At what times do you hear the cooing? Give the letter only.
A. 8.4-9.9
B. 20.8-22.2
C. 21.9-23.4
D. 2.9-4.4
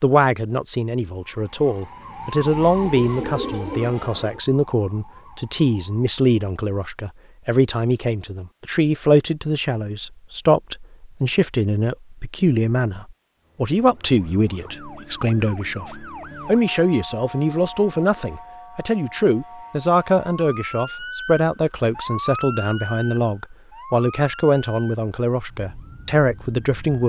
D.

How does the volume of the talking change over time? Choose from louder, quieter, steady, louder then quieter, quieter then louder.
steady.